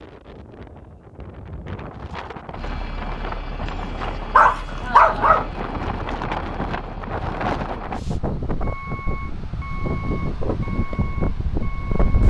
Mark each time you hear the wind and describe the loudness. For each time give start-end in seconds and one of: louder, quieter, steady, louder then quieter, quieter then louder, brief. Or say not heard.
0.0-12.2 louder.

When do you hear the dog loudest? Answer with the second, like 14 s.
5 s.